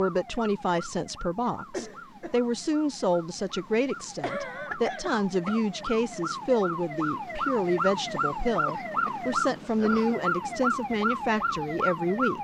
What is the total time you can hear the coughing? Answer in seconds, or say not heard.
4 s.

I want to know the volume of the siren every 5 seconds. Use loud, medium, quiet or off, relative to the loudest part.
quiet, loud, loud.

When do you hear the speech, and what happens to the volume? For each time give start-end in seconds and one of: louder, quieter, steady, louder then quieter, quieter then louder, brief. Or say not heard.
0.0-12.3 steady.